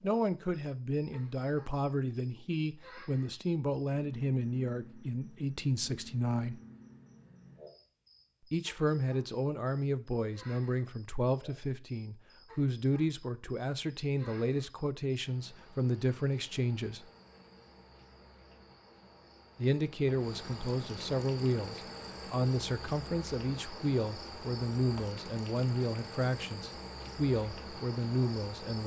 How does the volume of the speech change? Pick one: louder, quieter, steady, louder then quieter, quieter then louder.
steady.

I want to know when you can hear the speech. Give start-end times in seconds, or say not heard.
0.0-6.6, 8.5-17.1, 19.6-28.8.